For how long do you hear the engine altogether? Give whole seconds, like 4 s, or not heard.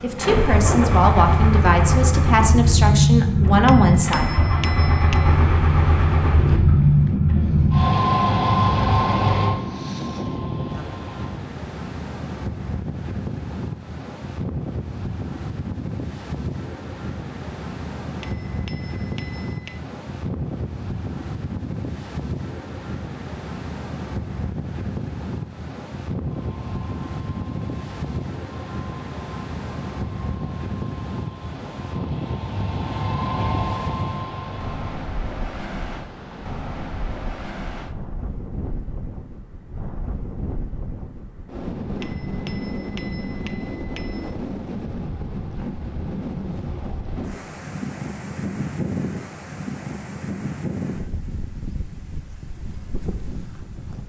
20 s.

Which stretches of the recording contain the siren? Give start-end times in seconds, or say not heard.
not heard.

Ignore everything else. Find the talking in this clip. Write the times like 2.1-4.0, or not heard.
0.0-4.2.